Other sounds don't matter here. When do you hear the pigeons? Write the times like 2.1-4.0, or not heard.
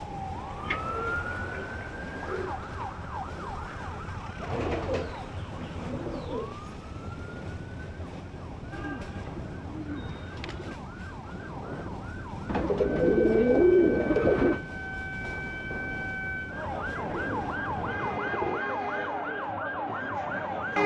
0.7-2.5, 4.4-6.5, 8.7-10.7, 12.4-14.7, 17.1-18.6.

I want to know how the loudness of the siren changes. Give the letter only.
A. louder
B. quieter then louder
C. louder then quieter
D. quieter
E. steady
B.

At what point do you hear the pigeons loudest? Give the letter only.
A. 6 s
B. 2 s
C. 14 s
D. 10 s
C.